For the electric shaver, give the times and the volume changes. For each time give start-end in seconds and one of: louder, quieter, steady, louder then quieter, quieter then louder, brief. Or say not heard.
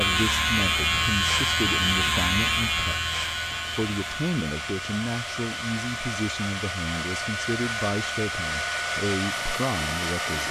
0.0-10.4 quieter.